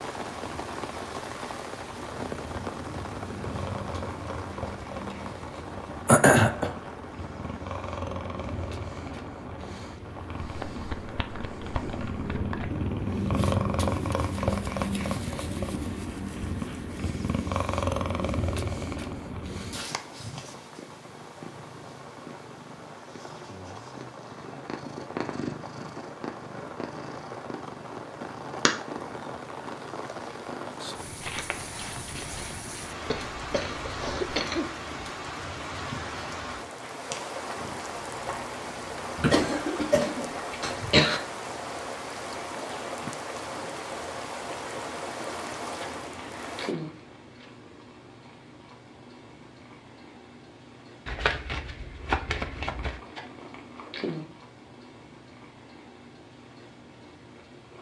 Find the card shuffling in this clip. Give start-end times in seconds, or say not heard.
10.4-12.8, 31.2-32.5, 51.0-53.0.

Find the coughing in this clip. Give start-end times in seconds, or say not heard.
6.0-6.7, 33.0-34.6, 39.1-41.2.